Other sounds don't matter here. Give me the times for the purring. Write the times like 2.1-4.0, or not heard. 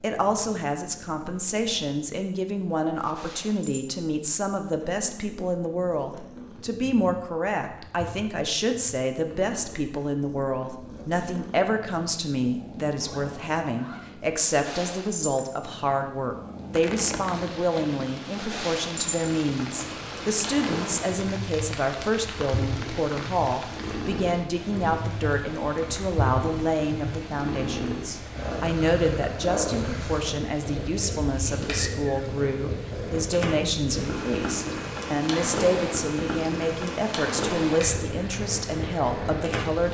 0.0-39.8.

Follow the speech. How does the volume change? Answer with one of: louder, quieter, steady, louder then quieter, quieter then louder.
steady.